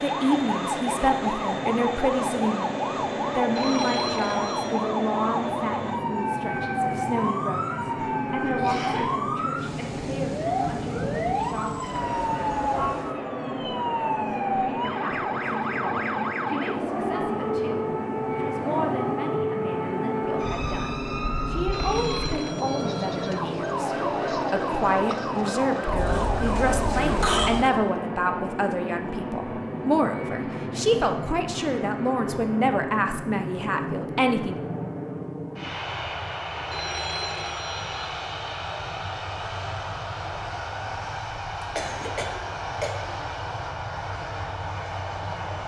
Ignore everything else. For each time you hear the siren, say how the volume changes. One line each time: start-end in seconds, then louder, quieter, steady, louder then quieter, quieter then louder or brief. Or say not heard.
0.0-28.0 steady.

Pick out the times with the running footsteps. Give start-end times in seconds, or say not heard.
not heard.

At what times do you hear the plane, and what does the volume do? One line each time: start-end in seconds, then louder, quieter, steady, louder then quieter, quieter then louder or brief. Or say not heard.
0.0-45.6 steady.